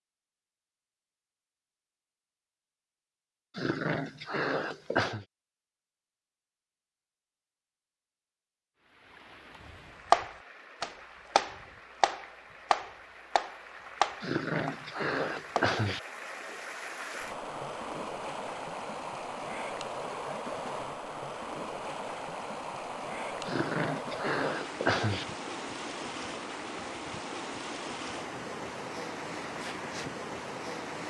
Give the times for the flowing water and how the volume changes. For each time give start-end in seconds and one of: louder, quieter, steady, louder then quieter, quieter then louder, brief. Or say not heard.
8.8-31.0 louder.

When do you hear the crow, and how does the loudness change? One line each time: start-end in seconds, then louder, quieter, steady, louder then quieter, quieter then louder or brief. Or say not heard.
not heard.